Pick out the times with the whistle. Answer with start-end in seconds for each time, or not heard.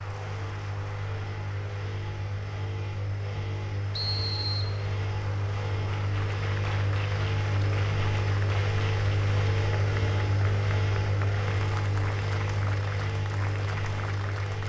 3.9-4.7.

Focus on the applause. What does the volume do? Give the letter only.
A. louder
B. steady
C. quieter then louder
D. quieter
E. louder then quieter
A.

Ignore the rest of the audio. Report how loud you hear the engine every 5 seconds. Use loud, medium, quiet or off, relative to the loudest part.
medium, loud, loud.